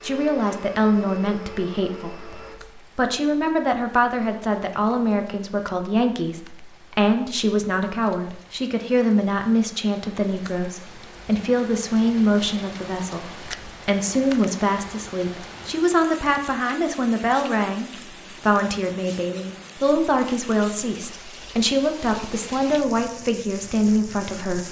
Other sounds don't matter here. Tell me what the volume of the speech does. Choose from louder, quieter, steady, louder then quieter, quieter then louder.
steady.